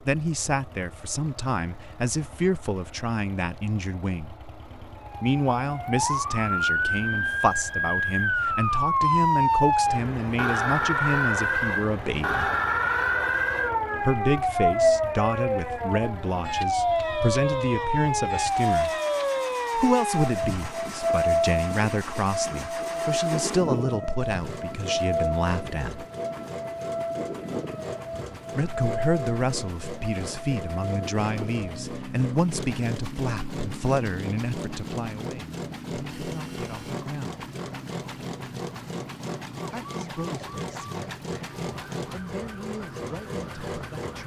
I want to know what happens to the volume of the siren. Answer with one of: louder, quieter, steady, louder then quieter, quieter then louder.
quieter.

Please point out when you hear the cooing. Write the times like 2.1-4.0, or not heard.
not heard.